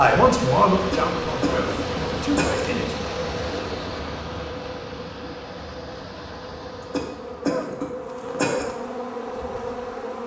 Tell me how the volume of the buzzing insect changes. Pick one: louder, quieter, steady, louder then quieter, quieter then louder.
quieter then louder.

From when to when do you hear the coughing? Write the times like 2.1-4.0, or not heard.
0.8-2.8, 6.8-8.7.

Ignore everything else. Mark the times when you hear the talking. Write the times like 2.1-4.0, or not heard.
0.0-3.1.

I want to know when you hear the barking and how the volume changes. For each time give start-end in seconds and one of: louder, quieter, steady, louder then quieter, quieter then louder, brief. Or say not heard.
not heard.